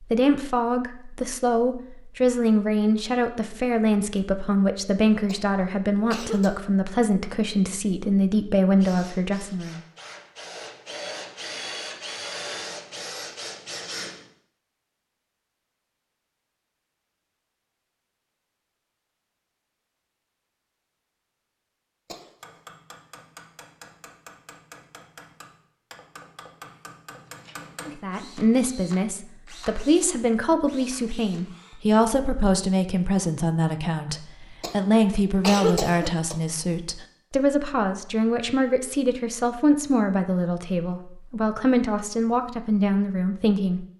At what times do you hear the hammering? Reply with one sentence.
You can hear the hammering from 22.4 to 27.9 s.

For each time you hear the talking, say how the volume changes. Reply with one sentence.
The talking can be heard from 0.1 to 9.8 s, at a steady volume; and from 27.9 to 43.9 s, at a steady volume.